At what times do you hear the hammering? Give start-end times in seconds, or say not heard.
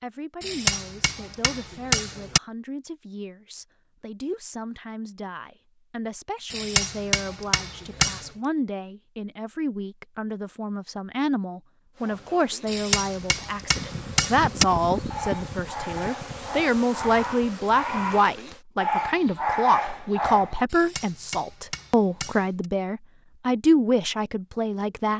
0.4-2.4, 6.5-8.3, 12.7-14.7, 20.7-22.6.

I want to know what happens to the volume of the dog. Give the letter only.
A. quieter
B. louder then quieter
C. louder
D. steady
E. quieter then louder
C.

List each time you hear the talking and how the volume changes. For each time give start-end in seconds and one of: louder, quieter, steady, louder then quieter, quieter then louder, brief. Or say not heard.
0.0-25.1 louder.